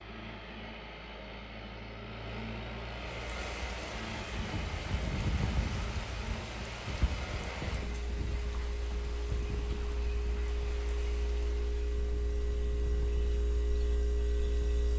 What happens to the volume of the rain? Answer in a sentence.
The volume of the rain goes down.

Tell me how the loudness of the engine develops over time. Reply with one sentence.
The loudness of the engine stays about the same.